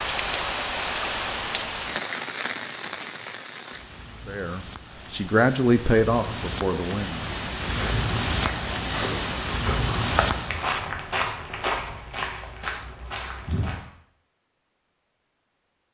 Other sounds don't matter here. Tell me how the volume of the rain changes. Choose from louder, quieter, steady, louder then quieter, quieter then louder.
quieter then louder.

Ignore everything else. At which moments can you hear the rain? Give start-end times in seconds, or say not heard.
0.0-10.7.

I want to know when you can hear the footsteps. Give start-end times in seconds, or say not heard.
7.7-13.8.